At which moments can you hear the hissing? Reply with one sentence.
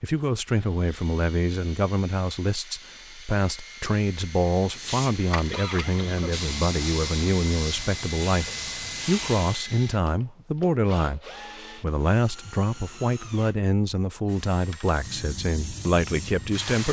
The hissing can be heard from 4.7 to 9.7 s and from 14.8 to 16.8 s.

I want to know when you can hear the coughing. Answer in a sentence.
The coughing can be heard from 5.5 to 6.3 s.